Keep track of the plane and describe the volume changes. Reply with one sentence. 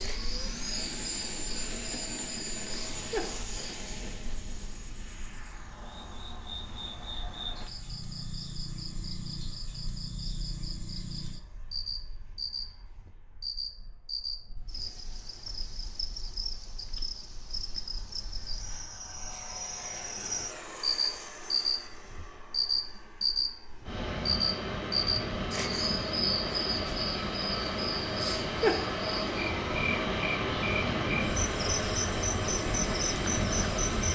The loudness of the plane goes down, then up.